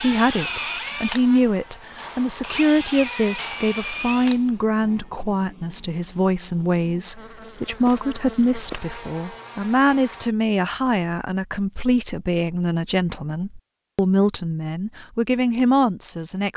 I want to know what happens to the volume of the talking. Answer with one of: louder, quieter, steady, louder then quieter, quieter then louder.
steady.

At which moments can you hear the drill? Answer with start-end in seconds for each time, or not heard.
0.0-4.5.